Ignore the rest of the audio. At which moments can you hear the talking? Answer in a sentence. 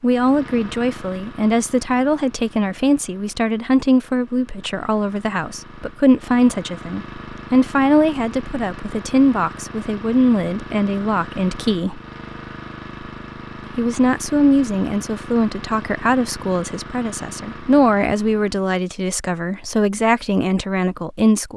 You can hear the talking from 0.0 to 12.0 s and from 13.8 to 21.5 s.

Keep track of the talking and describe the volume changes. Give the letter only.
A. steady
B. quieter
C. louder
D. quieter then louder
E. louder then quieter
A.